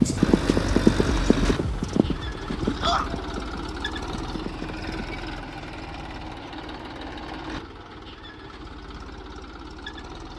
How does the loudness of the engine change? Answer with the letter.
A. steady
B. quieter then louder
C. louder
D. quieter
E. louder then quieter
D.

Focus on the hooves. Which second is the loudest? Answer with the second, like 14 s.
1 s.